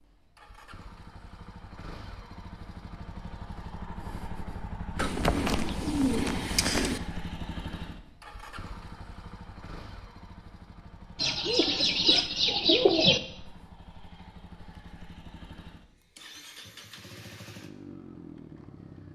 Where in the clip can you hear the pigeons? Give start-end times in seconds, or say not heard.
5.0-7.0, 11.2-13.2.